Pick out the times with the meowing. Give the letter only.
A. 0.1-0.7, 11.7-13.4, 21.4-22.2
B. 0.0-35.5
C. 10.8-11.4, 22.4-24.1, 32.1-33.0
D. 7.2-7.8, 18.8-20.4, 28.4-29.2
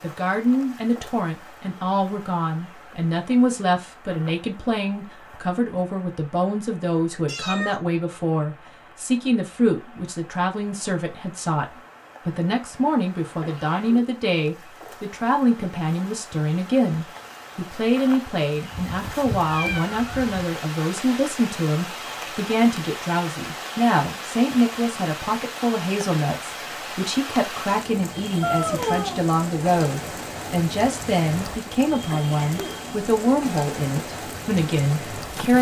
D.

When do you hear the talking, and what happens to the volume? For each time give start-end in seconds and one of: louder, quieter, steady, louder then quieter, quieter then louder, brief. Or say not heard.
0.0-35.5 steady.